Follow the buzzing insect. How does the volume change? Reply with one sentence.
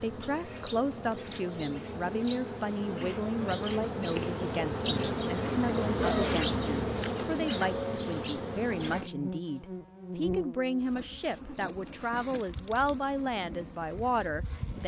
The loudness of the buzzing insect goes up, then down.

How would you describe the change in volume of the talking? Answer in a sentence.
The loudness of the talking stays about the same.